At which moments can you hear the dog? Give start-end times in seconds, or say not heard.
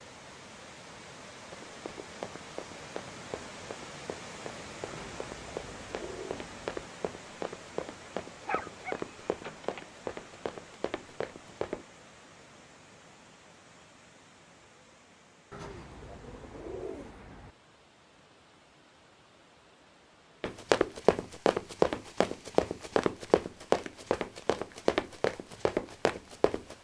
8.4-9.8.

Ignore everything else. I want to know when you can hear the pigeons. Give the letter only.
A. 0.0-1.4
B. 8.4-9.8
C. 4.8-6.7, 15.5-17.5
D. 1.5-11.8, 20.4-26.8
C.